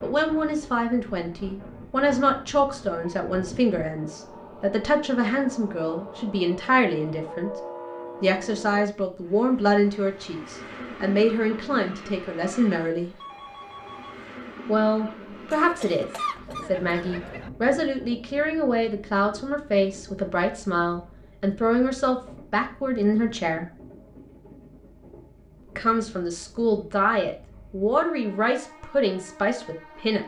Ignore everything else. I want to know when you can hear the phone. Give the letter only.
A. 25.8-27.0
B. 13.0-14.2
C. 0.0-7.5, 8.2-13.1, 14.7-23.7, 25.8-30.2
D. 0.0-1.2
B.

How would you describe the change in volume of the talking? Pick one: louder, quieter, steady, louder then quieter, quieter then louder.
steady.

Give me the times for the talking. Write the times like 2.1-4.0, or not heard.
0.0-7.5, 8.2-13.1, 14.7-23.7, 25.8-30.2.